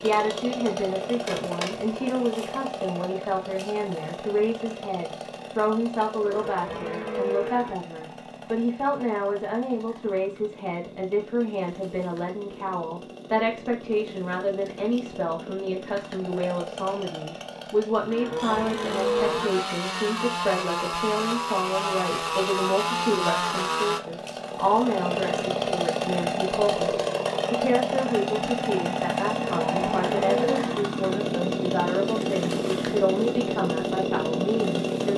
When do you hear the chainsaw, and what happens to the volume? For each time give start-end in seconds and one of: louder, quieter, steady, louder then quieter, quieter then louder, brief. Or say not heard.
0.0-35.1 quieter then louder.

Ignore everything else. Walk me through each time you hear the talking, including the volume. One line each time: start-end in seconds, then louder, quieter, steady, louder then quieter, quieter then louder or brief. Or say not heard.
0.0-35.1 steady.